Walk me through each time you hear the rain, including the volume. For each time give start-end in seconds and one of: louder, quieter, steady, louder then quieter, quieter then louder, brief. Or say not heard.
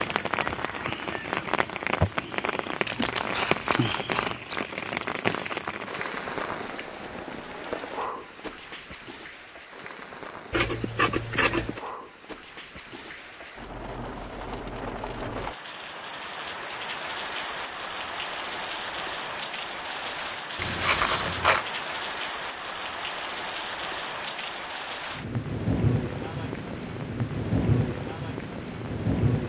0.0-29.4 quieter then louder.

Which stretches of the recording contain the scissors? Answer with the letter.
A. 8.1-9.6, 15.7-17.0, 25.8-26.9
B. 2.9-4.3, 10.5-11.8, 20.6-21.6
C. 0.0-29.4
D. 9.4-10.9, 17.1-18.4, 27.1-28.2
B.